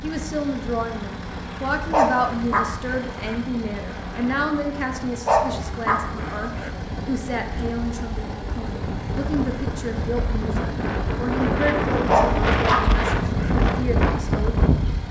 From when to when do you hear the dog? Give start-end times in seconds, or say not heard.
1.9-3.4, 5.2-6.7, 12.1-13.6.